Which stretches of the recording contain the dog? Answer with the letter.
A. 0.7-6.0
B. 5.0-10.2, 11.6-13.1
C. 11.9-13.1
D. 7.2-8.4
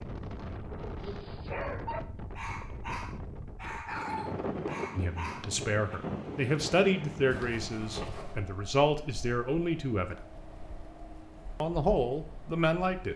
A.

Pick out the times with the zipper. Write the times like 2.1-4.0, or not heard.
7.2-8.4.